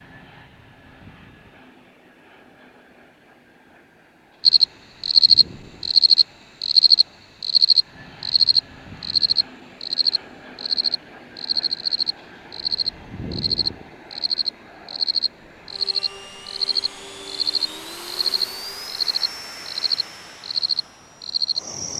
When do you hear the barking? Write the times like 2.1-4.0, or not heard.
not heard.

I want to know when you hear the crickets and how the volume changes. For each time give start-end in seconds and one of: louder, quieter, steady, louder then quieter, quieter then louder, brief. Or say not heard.
4.4-21.9 quieter.